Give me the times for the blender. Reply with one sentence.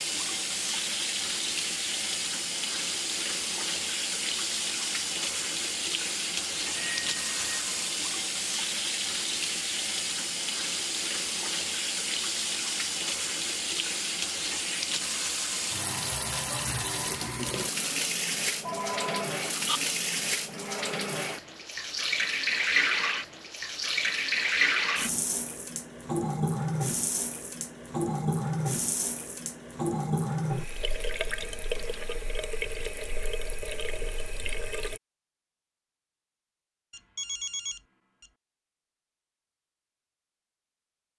You can't hear the blender here.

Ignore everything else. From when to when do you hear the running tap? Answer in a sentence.
You can hear the running tap from 0.0 to 35.0 s.